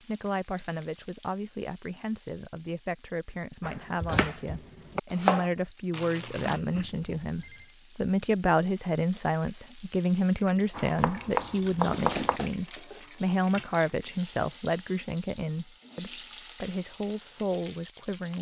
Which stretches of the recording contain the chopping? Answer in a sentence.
The chopping can be heard from 3.6 to 5.5 s and from 10.8 to 12.4 s.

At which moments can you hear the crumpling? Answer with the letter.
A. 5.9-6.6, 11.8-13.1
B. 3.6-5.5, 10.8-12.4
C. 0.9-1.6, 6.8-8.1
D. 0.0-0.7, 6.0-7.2
A.